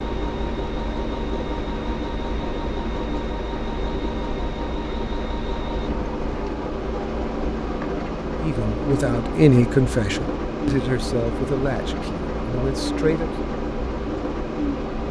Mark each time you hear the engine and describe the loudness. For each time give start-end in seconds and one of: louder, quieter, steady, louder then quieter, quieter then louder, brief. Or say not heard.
0.0-15.0 steady.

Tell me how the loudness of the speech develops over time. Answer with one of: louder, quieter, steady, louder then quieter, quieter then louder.
quieter.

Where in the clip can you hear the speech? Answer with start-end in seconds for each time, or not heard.
8.4-13.3.